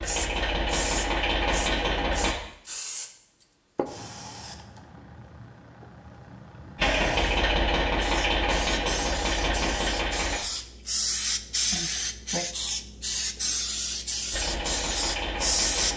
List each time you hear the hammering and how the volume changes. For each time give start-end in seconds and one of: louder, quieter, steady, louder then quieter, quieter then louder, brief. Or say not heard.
not heard.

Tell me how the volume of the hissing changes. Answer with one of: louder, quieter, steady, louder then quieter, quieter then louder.
quieter then louder.